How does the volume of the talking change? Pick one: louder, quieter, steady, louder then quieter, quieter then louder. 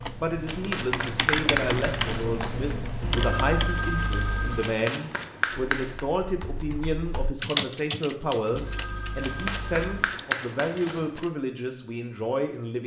steady.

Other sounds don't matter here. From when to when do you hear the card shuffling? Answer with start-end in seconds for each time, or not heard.
0.5-2.8, 4.6-6.0, 9.2-11.2.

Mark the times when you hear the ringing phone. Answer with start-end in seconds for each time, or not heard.
3.0-4.7, 8.5-10.2.